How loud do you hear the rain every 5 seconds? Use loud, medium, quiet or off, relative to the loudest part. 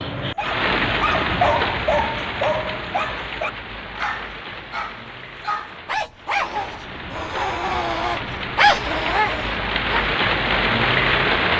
medium, medium, loud.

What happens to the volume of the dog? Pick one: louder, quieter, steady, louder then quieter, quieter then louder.
quieter then louder.